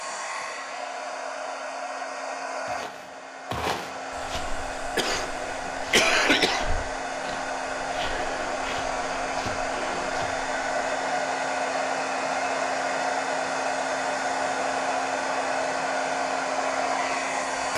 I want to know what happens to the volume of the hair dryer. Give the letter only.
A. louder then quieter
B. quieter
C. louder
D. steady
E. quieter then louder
C.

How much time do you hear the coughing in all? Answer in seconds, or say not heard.
2 s.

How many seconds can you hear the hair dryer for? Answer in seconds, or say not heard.
18 s.